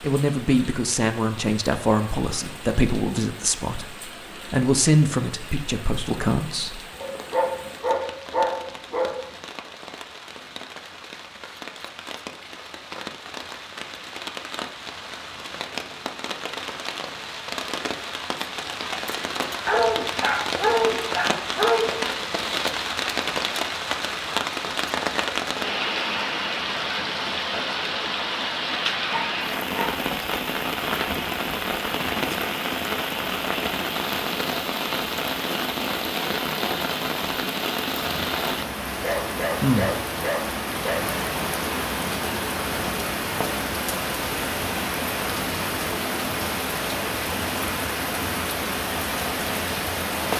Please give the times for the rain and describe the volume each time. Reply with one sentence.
The rain can be heard from 0.0 to 50.3 s, getting louder.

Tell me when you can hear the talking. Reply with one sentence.
You can hear the talking from 0.0 to 6.8 s.